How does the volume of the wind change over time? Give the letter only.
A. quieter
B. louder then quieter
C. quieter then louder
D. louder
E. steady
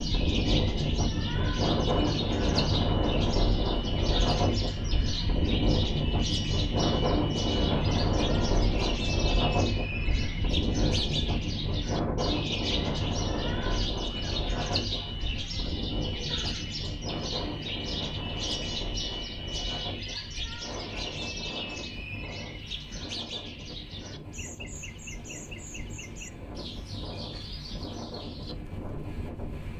A.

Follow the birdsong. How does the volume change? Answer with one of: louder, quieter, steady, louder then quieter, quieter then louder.
quieter.